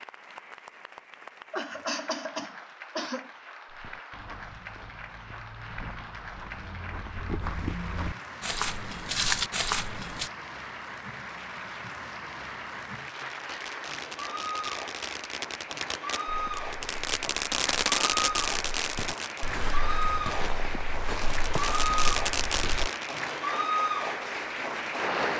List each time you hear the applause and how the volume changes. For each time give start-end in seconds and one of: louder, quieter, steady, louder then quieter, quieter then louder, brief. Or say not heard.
0.0-25.3 louder.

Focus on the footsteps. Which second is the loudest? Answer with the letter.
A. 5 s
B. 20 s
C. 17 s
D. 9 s
D.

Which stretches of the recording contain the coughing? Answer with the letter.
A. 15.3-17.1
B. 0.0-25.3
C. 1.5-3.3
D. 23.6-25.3
C.